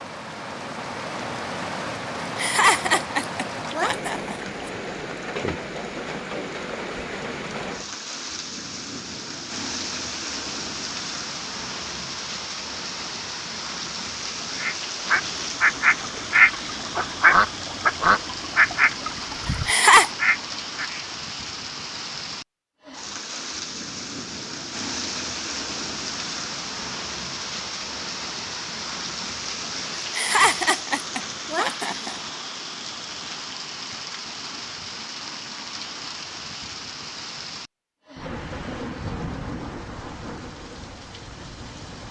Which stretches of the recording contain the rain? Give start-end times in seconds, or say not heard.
0.0-42.0.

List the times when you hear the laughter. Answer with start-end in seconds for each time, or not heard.
2.4-4.6, 19.6-20.1, 29.9-32.2.